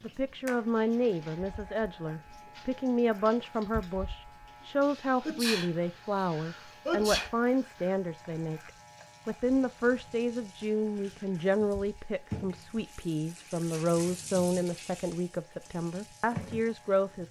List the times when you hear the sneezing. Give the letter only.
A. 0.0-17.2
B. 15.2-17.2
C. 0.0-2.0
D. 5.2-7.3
D.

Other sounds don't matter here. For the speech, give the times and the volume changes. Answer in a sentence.
You can hear the speech from 0.0 to 17.2 s, at a steady volume.